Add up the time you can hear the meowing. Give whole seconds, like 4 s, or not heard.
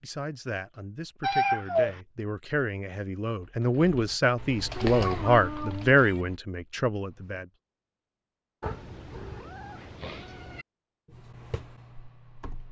4 s.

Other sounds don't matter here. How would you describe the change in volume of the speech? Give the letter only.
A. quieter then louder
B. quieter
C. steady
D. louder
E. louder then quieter
D.